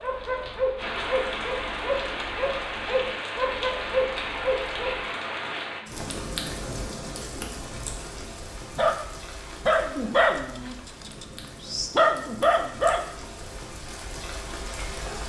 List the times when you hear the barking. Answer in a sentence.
You can hear the barking from 0.0 to 5.0 s and from 8.8 to 13.4 s.